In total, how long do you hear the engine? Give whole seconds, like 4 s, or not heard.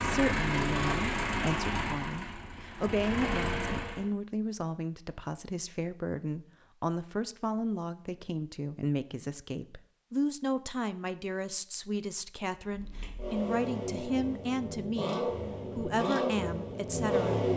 9 s.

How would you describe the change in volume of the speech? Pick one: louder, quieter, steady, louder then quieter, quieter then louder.
steady.